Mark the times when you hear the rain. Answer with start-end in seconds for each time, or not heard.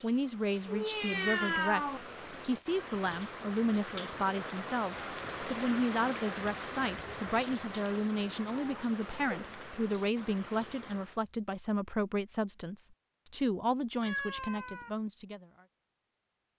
0.0-11.2.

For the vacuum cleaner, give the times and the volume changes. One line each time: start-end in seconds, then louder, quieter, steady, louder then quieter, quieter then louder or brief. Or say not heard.
not heard.